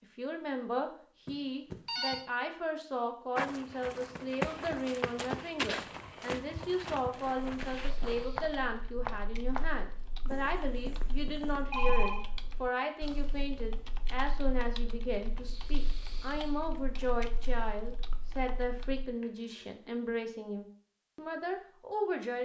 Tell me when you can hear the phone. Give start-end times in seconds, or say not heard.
1.2-2.2, 11.1-12.2, 19.2-19.8.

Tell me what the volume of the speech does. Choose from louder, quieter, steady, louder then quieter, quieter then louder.
steady.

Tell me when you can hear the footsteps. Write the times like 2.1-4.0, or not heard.
3.4-11.7.